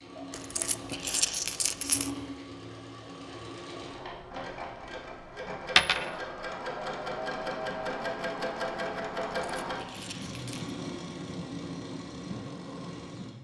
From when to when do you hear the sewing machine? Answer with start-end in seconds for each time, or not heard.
0.0-13.4.